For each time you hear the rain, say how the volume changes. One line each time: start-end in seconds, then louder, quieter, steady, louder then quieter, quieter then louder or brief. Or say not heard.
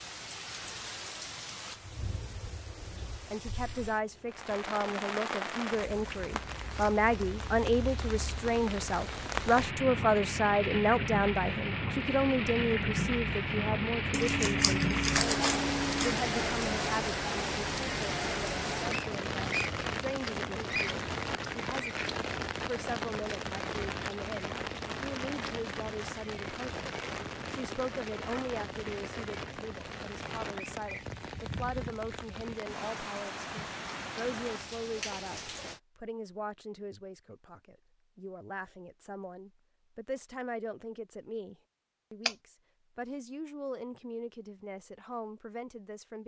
0.0-35.8 louder then quieter.